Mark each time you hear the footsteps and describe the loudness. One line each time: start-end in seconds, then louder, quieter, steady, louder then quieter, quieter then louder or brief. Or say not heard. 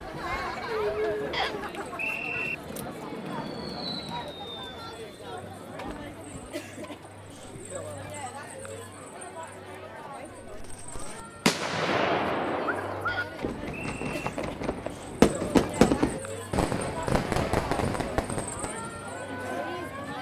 not heard.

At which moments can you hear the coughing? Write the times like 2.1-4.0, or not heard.
not heard.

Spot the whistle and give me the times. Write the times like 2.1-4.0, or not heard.
1.3-2.5, 13.1-14.3.